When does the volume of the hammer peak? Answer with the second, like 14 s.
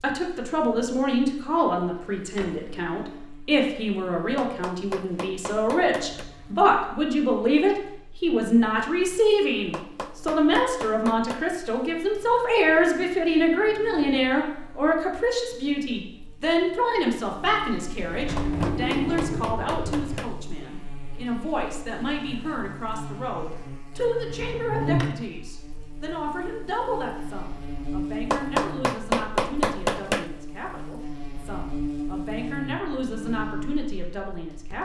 29 s.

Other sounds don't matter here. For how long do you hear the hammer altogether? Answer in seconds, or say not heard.
8 s.